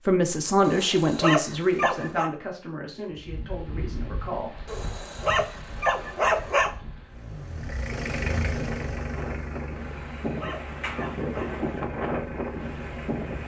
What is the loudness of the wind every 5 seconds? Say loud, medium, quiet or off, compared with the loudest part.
medium, medium, loud.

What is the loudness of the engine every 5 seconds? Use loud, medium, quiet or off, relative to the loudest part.
off, loud, medium.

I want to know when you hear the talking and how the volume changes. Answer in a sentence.
The talking can be heard from 0.0 to 4.6 s, getting quieter.